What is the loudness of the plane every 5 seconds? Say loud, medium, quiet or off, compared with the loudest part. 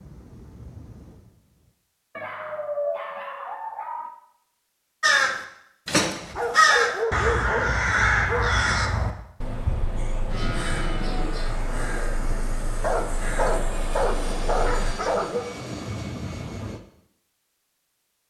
quiet, off, loud, loud.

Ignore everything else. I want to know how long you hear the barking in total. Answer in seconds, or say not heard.
7 s.